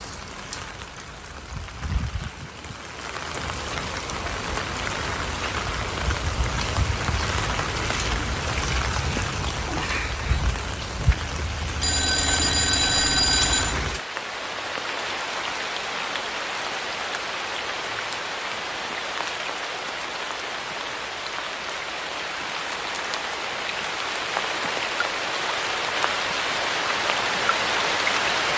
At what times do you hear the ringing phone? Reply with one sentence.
You can hear the ringing phone from 11.8 to 13.8 s.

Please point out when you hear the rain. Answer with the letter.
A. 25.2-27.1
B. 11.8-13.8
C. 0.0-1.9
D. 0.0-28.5
D.